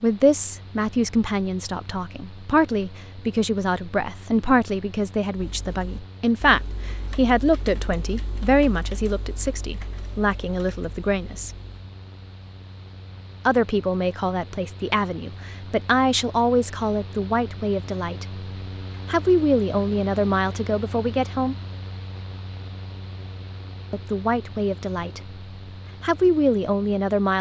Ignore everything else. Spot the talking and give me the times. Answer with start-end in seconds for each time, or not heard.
0.0-11.5, 13.4-18.2, 19.1-21.6, 23.9-25.2, 26.0-27.3.